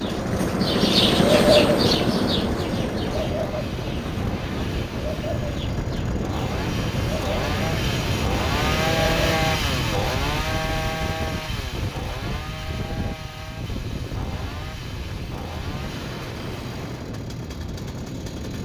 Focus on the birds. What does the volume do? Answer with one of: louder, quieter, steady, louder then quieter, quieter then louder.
quieter.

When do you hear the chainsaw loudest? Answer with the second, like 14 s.
9 s.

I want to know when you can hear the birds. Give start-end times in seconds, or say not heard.
0.0-9.4.